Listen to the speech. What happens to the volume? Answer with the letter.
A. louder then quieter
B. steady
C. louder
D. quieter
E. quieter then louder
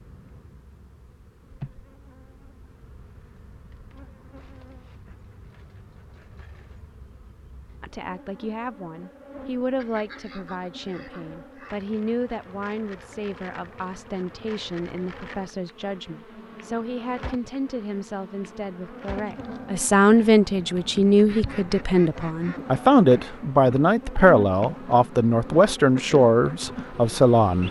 C.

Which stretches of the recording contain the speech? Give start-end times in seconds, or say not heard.
7.8-27.6.